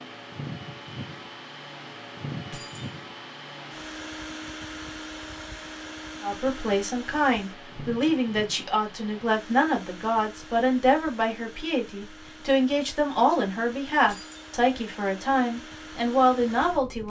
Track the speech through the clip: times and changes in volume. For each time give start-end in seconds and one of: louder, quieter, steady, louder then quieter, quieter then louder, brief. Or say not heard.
6.2-17.0 steady.